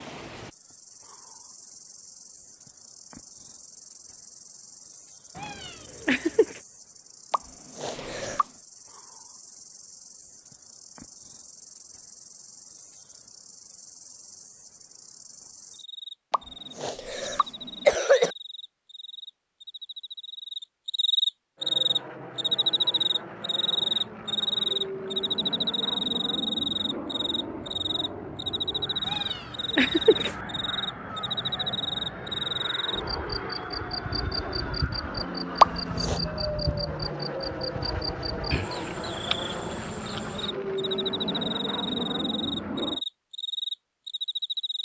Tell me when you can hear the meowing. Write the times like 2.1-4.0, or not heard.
5.3-6.6, 29.1-30.4.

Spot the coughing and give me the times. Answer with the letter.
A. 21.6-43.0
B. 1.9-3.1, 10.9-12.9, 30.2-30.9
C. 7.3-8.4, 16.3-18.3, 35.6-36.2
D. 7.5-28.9
C.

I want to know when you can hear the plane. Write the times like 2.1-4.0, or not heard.
21.6-43.0.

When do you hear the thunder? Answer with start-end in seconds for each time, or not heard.
not heard.